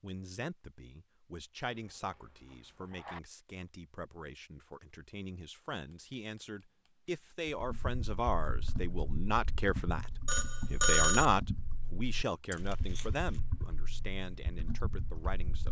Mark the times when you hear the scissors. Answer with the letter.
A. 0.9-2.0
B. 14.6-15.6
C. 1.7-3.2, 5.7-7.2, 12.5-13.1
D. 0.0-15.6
C.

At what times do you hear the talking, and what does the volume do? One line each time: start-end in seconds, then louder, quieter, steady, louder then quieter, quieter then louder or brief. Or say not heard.
0.0-15.6 louder then quieter.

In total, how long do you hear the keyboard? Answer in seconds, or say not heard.
8 s.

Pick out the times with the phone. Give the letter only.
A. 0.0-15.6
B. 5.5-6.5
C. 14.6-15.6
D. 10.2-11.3
D.